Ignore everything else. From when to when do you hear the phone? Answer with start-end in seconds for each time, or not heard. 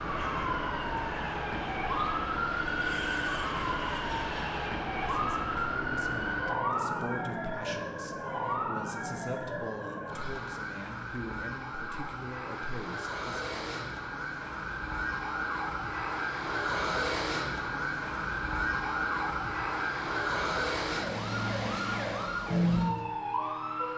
not heard.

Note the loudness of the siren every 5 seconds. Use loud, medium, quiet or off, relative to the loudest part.
loud, loud, medium, loud, loud.